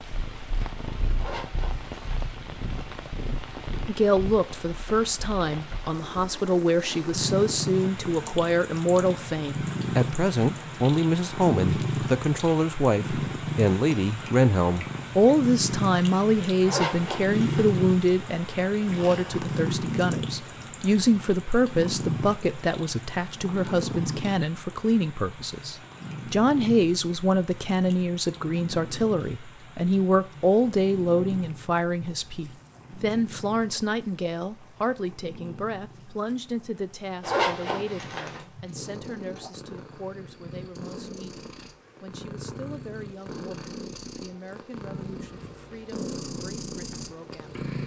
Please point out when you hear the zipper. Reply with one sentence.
The zipper can be heard from 1.1 to 2.3 s, from 16.6 to 17.6 s and from 37.2 to 38.5 s.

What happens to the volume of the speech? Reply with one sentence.
The loudness of the speech goes down.